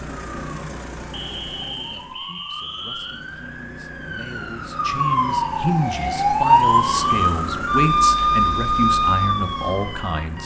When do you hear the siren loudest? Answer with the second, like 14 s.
7 s.